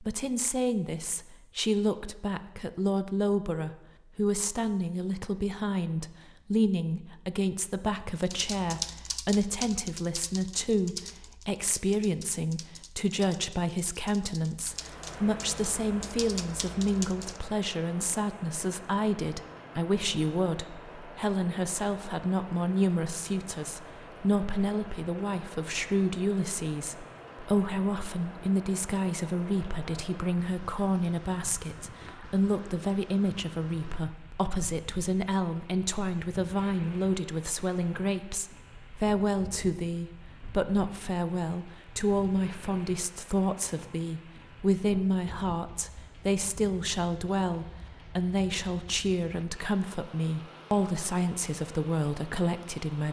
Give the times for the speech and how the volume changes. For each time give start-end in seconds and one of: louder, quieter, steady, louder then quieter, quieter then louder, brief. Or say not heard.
0.0-53.0 steady.